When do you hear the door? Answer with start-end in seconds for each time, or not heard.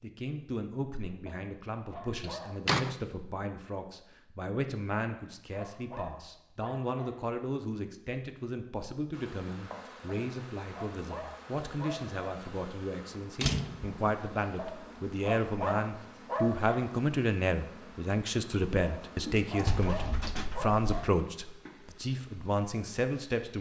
2.2-3.0, 13.4-14.0, 19.6-21.1.